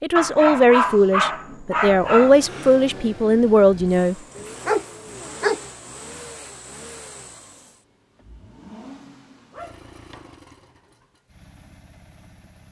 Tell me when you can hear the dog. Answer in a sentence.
You can hear the dog from 0.1 to 2.4 s, from 4.3 to 5.6 s and from 9.5 to 10.4 s.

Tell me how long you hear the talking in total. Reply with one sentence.
You can hear the talking for 4 seconds altogether.